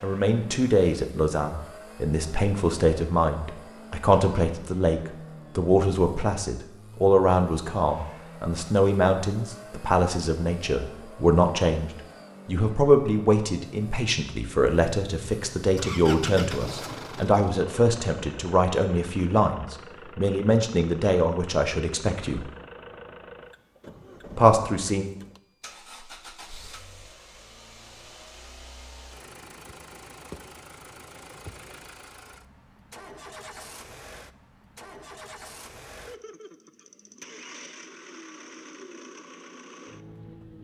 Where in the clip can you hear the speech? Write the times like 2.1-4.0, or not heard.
0.0-22.4, 24.4-25.1.